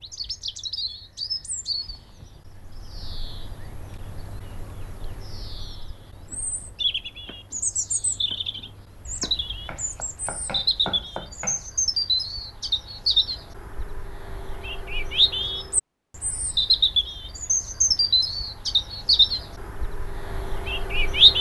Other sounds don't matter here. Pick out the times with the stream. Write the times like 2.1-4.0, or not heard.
not heard.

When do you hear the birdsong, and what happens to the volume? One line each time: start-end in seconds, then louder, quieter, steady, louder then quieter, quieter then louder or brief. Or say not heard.
0.0-21.3 louder.